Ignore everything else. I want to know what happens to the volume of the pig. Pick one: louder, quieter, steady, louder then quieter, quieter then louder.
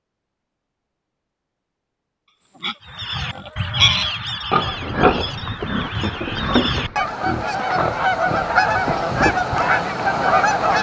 quieter.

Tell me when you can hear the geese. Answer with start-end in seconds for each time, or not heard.
2.9-10.7.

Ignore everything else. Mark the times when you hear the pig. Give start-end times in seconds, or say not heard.
2.6-9.4.